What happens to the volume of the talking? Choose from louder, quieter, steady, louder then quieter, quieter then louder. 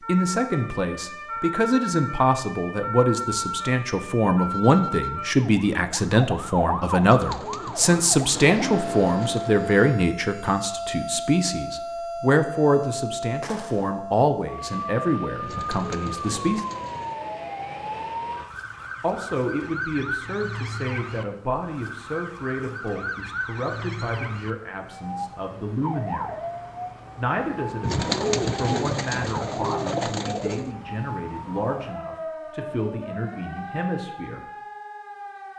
quieter.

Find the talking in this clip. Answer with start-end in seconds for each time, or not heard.
0.0-16.6, 19.0-26.4, 27.1-34.5.